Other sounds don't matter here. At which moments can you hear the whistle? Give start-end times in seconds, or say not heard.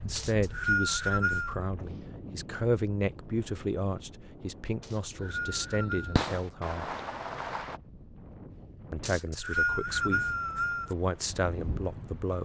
0.1-1.6, 4.8-6.2, 9.1-10.9.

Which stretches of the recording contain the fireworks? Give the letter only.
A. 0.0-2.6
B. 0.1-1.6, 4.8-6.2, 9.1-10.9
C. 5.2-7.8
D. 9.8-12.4
C.